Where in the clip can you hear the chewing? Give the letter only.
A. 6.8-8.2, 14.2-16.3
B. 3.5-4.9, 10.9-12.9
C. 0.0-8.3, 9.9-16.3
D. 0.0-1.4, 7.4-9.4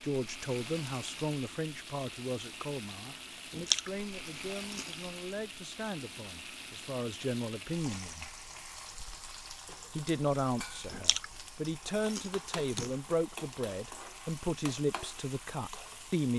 B.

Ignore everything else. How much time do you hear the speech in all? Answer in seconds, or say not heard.
15 s.